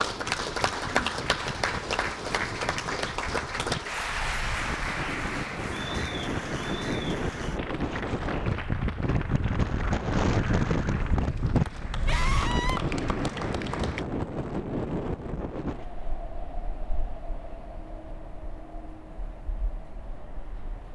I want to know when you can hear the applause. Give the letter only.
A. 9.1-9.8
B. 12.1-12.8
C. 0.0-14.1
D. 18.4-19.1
C.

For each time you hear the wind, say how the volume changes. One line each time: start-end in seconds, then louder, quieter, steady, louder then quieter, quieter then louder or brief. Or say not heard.
0.0-20.8 louder then quieter.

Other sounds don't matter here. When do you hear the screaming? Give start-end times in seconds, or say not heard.
12.1-12.8.